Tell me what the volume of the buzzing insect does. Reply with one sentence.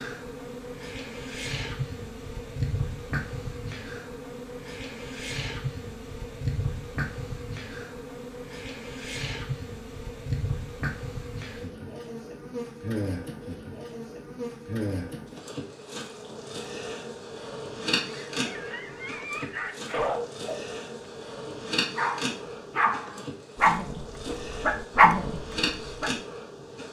The loudness of the buzzing insect stays about the same.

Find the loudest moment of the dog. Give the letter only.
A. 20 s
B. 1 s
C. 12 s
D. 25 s
D.